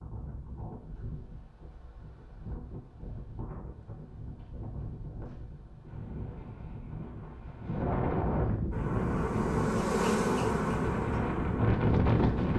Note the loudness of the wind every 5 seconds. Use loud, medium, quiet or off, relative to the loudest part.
quiet, medium, loud.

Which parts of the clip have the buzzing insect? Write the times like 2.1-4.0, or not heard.
8.7-12.5.